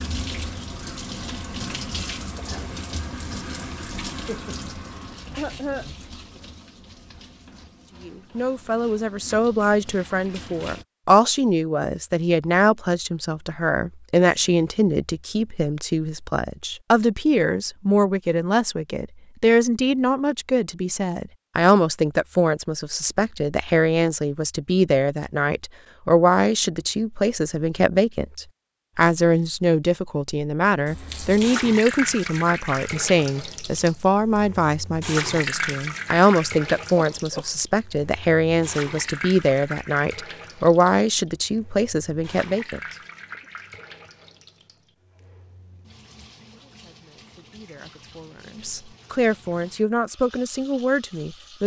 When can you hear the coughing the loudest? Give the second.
6 s.